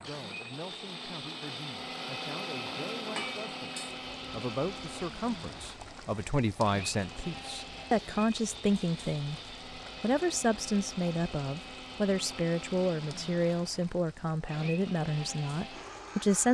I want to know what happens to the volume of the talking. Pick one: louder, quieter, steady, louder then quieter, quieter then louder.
louder.